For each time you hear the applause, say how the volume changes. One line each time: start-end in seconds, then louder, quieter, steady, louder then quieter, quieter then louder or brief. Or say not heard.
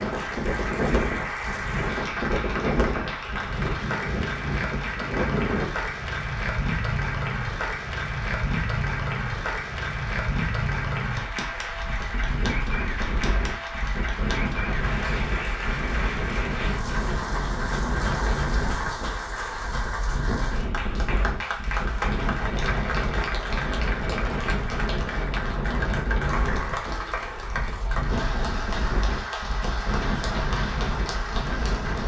0.0-32.0 steady.